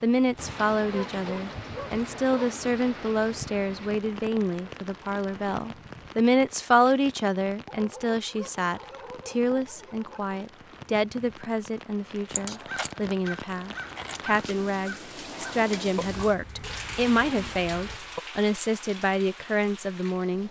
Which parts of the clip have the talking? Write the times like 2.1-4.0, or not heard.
0.0-20.4.